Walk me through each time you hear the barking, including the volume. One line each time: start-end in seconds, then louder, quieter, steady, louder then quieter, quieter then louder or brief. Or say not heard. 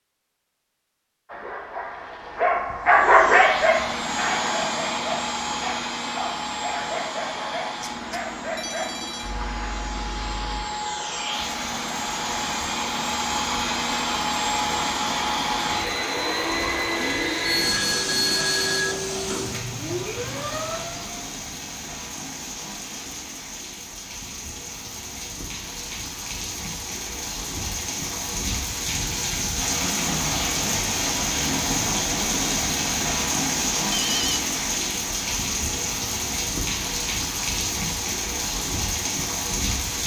1.2-10.7 quieter.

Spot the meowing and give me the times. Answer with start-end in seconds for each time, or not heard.
not heard.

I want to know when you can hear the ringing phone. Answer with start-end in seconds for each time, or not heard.
7.8-9.3, 17.4-18.9, 33.9-34.4.